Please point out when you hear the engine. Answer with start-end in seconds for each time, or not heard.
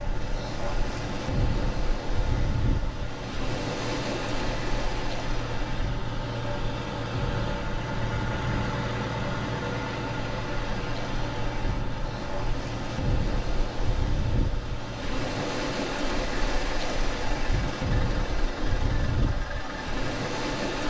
0.0-20.8.